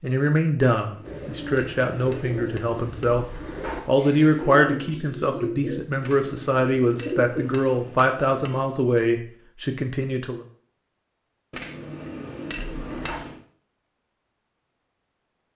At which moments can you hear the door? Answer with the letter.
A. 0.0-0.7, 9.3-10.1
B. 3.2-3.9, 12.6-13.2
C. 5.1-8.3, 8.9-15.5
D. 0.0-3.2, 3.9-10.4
B.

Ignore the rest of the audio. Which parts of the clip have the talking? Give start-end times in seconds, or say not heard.
0.0-3.2, 3.9-10.4.